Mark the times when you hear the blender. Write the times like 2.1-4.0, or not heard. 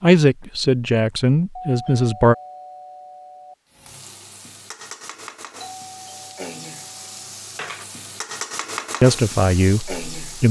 not heard.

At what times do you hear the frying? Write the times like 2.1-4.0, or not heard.
3.7-10.4.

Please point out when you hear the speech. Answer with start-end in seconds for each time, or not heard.
0.0-2.4, 9.0-10.4.